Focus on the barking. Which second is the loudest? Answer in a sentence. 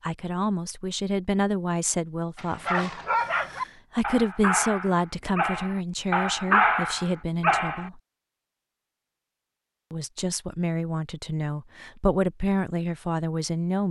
The volume of the barking peaks at 7 seconds.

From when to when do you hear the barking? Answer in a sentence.
You can hear the barking from 2.4 to 7.9 s.